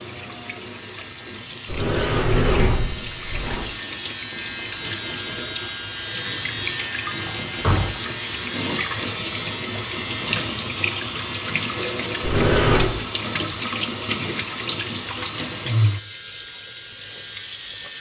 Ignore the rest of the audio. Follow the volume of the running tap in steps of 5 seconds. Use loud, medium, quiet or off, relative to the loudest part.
medium, loud, loud, loud.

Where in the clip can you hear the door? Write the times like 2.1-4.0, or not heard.
1.6-3.6, 7.2-7.9, 12.2-12.9.